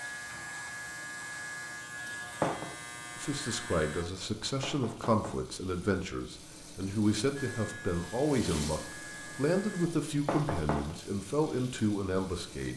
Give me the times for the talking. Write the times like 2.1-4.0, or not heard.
3.1-12.7.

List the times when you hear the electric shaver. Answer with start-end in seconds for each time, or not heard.
0.0-4.0, 7.3-9.9.